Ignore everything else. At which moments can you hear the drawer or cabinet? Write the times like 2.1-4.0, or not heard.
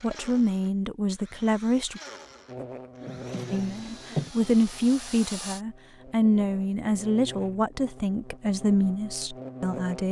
3.0-4.3.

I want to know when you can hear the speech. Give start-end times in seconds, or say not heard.
0.0-2.0, 3.5-10.0.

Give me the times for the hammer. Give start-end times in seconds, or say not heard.
not heard.